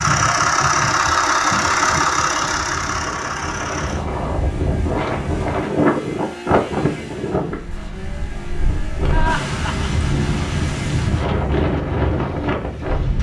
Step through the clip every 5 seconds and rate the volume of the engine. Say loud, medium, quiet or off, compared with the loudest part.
loud, quiet, quiet.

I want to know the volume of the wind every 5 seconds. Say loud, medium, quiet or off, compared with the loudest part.
medium, loud, loud.